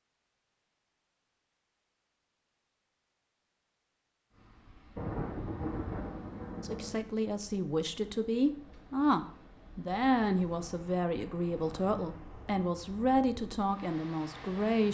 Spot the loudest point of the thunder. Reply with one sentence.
The volume of the thunder peaks at 5 seconds.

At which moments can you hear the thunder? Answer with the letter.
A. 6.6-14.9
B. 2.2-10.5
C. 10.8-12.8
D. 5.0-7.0
D.